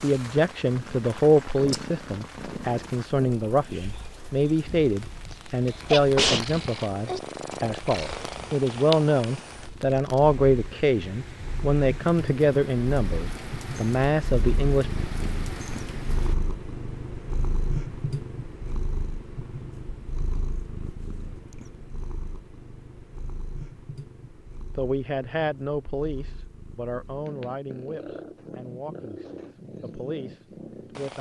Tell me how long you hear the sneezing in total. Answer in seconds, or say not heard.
2 s.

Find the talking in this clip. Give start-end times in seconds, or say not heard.
0.0-14.9, 24.8-31.1.